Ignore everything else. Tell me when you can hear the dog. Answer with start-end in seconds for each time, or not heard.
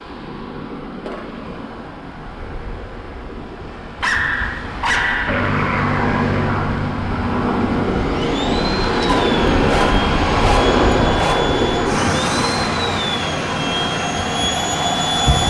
4.0-5.5, 9.1-11.4.